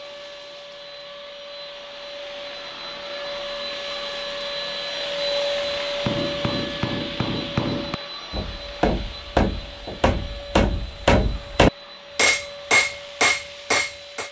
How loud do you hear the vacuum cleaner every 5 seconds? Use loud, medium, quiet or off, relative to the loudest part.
loud, loud, medium.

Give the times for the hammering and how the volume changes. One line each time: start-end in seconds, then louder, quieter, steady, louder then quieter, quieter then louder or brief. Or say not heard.
5.7-14.2 louder.